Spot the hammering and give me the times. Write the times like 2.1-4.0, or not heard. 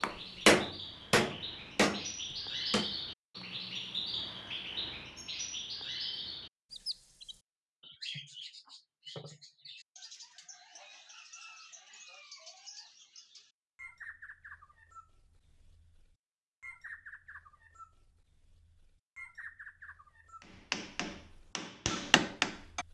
0.0-3.0, 20.4-22.8.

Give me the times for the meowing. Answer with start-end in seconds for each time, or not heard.
not heard.